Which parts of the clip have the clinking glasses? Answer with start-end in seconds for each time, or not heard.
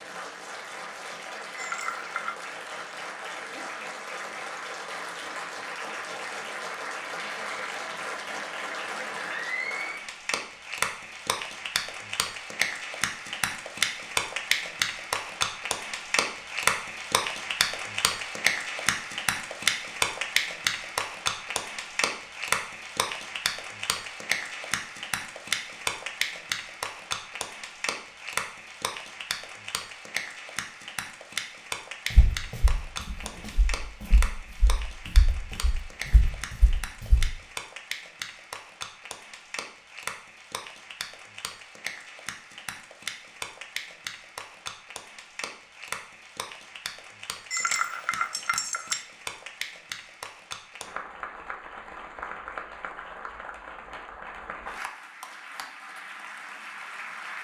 1.6-2.4, 47.5-49.0.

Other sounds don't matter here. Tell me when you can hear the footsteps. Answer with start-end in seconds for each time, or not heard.
32.1-37.3.